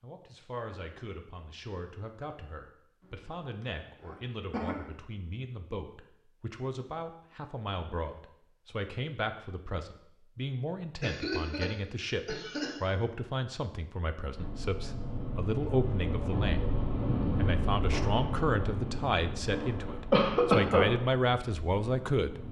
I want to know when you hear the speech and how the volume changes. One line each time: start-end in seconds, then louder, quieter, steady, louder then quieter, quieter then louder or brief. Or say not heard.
0.0-22.4 louder.